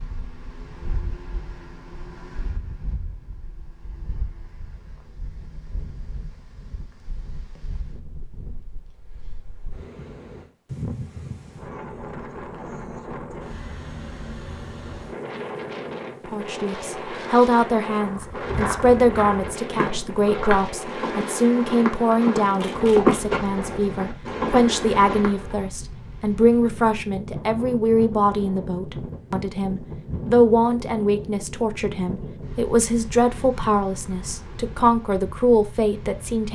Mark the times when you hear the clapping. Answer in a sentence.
The clapping can't be heard in this clip.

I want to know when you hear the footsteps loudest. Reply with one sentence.
The volume of the footsteps peaks at 23 seconds.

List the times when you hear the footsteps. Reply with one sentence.
The footsteps can be heard from 18.0 to 25.7 s.